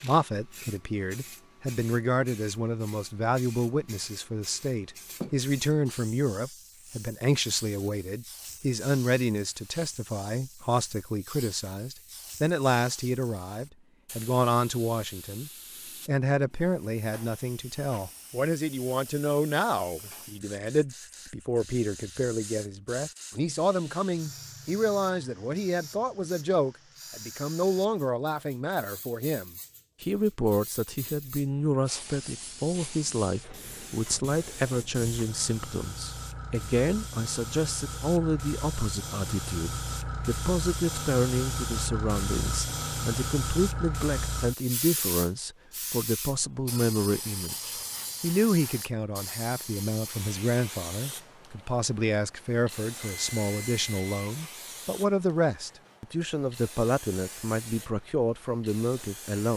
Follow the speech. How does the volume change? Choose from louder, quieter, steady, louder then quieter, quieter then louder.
steady.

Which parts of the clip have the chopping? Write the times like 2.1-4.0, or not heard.
not heard.